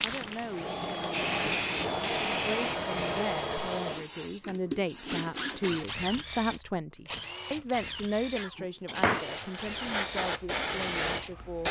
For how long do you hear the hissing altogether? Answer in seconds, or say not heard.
8 s.